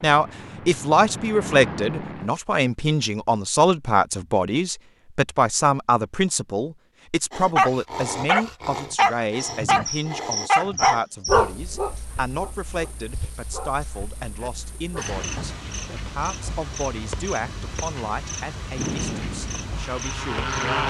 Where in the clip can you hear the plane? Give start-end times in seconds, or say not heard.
0.0-2.3, 18.8-20.8.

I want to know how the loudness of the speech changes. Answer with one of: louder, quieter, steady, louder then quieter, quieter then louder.
quieter.